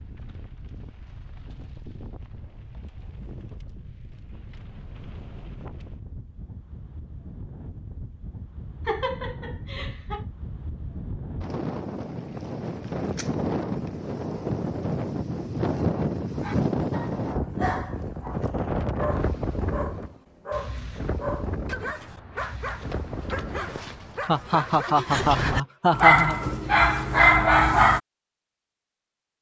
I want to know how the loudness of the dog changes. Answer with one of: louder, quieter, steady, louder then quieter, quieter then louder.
louder.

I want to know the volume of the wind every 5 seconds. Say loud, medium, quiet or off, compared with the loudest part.
quiet, quiet, loud, loud, medium, off.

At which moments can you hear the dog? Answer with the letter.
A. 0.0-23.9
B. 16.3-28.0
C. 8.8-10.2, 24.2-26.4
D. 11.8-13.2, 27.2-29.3
B.